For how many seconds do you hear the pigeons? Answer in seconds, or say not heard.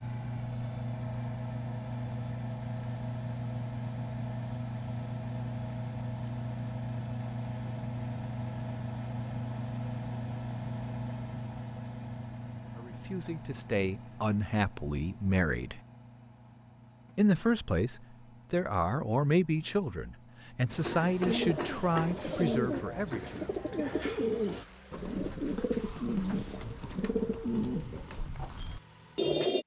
9 s.